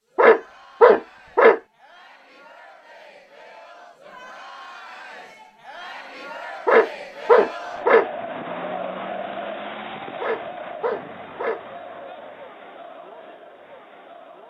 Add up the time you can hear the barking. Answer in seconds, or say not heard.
4 s.